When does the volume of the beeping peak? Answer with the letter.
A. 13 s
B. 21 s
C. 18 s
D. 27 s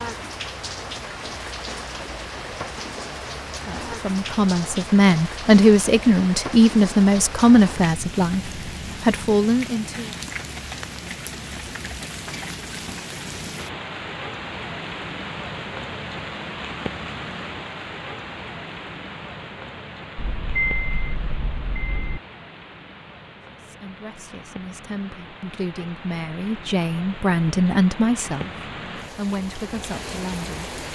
B.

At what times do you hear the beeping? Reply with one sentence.
You can hear the beeping from 20.1 to 22.2 s.